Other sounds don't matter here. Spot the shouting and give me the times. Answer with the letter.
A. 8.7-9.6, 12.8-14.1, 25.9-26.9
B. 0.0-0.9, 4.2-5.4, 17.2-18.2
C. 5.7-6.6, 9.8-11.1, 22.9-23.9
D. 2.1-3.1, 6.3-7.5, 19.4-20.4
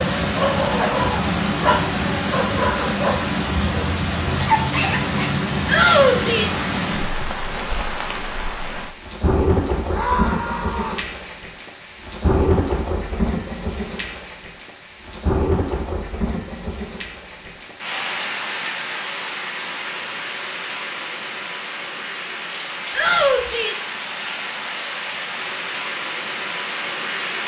C.